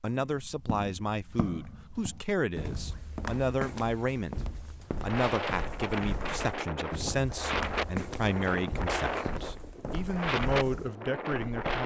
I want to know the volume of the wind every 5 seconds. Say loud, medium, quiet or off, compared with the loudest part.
off, loud, loud.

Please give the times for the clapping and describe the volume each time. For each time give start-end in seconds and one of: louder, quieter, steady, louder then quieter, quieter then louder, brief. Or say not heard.
not heard.